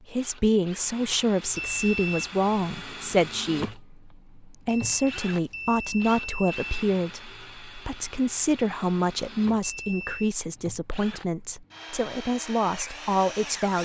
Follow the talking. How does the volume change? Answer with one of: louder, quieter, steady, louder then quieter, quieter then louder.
steady.